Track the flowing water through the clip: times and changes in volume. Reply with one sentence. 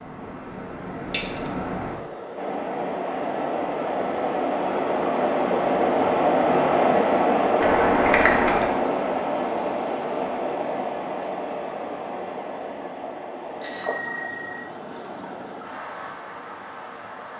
You can hear the flowing water from 0.0 to 17.3 s, getting louder then quieter.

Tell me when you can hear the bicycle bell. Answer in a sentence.
You can hear the bicycle bell from 1.1 to 1.8 s, from 7.6 to 8.7 s and from 13.6 to 14.6 s.